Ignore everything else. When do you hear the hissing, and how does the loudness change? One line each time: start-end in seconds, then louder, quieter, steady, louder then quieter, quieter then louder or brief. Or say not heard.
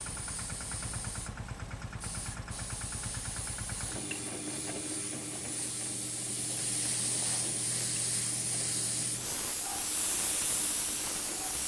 0.0-11.6 louder.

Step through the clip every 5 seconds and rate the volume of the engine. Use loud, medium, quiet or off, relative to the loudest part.
loud, medium, medium.